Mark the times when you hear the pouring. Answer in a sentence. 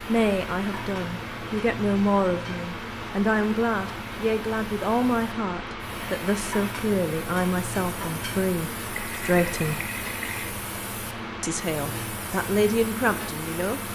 The pouring can be heard from 8.9 to 10.6 s.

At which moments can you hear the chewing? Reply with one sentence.
The chewing can't be heard in this clip.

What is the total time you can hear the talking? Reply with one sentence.
You can hear the talking for 12 seconds altogether.